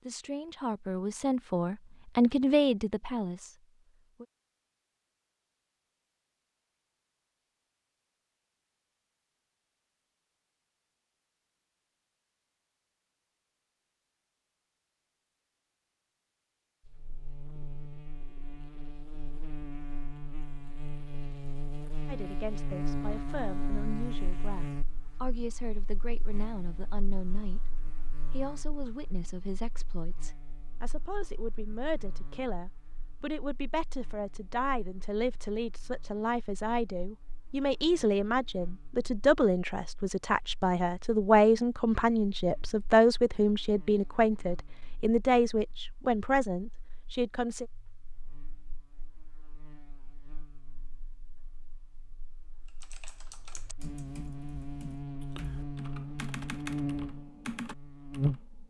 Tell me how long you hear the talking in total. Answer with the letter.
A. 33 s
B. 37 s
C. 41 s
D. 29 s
D.